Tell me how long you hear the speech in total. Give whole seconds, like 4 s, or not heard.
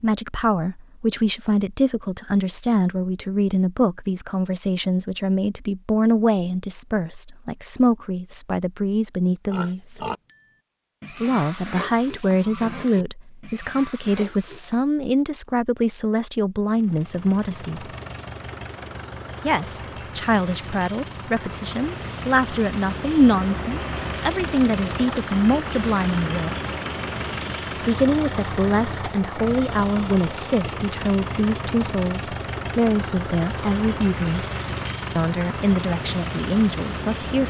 33 s.